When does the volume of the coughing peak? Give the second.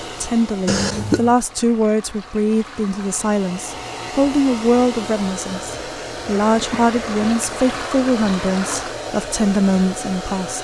1 s.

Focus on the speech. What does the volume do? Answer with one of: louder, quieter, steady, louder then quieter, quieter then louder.
steady.